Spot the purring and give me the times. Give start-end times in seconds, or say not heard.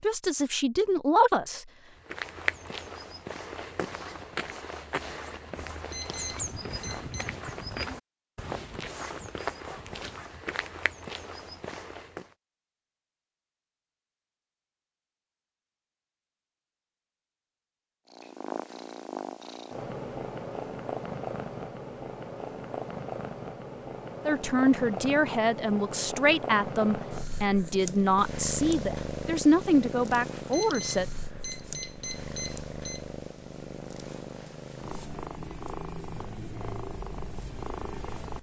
18.1-38.3.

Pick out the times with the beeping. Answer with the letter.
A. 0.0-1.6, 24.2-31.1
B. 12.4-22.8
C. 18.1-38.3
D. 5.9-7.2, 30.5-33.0
D.